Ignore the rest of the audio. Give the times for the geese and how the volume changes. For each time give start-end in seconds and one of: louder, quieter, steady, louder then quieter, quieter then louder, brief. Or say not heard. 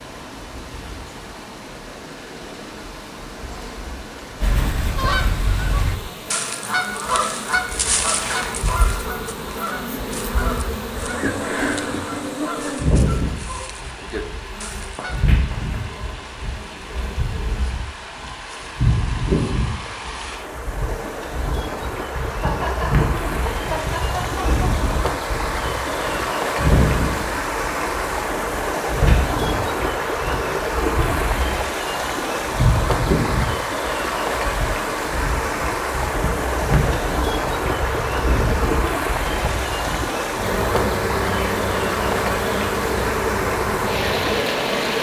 4.4-15.2 quieter.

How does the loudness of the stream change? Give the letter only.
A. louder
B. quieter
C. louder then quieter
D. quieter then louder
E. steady
A.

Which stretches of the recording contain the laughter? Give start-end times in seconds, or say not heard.
22.3-24.7.